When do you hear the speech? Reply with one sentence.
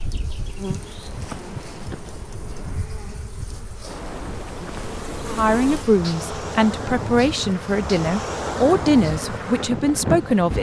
The speech can be heard from 5.3 to 10.5 s.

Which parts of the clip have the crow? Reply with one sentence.
You can't hear the crow here.